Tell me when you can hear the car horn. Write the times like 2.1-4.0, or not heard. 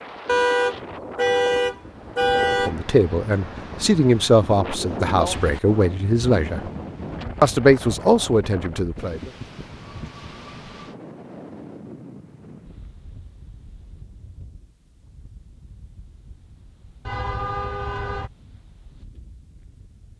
0.2-2.8, 17.1-18.3.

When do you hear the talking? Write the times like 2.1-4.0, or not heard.
2.5-6.7, 7.4-9.3.